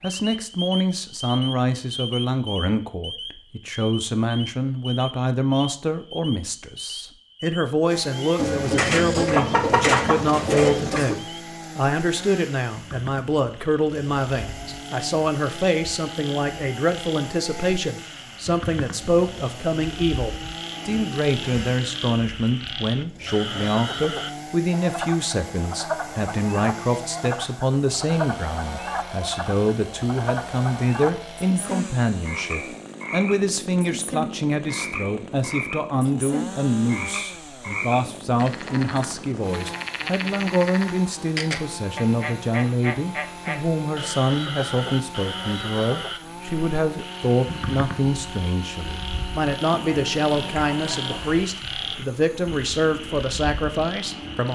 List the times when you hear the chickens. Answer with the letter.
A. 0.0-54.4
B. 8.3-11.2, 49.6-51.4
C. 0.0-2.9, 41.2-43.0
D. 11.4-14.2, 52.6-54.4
B.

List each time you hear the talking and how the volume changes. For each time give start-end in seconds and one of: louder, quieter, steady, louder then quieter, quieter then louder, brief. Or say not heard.
0.0-54.4 steady.